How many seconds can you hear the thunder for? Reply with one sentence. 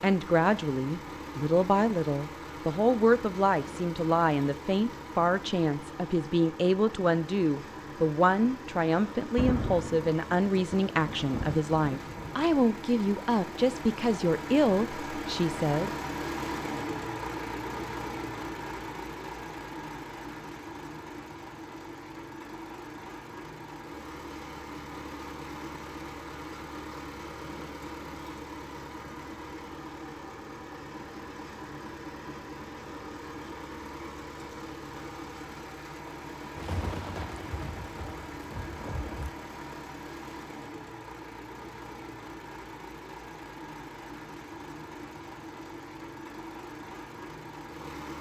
The thunder can be heard for 6 seconds in total.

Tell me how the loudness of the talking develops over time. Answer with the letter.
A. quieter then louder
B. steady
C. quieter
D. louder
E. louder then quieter
B.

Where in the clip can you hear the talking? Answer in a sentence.
You can hear the talking from 0.0 to 15.9 s.